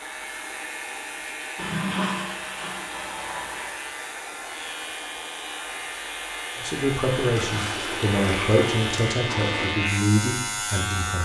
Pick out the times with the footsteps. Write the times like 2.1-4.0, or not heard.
not heard.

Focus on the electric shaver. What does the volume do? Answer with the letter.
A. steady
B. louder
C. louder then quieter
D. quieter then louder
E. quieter
B.